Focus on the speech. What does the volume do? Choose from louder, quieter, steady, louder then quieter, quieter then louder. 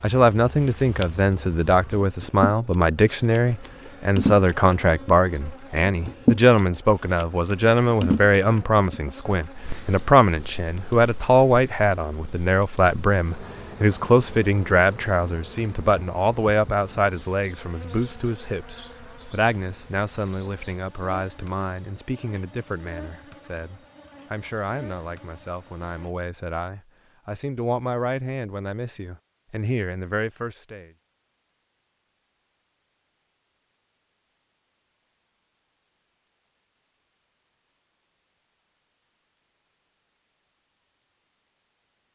quieter.